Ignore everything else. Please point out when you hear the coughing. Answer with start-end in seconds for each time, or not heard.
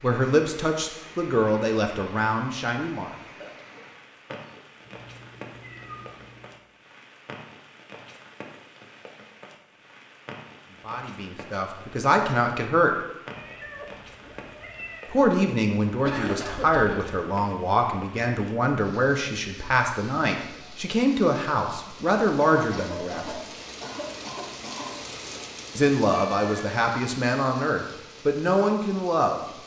3.4-4.7, 16.1-17.1, 22.4-24.9.